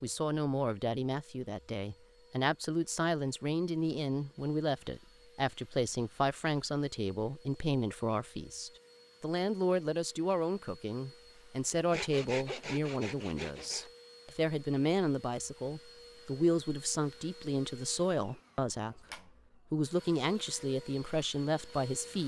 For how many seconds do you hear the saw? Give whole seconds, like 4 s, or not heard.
2 s.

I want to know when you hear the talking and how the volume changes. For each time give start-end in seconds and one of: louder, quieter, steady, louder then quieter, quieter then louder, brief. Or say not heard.
0.0-22.2 steady.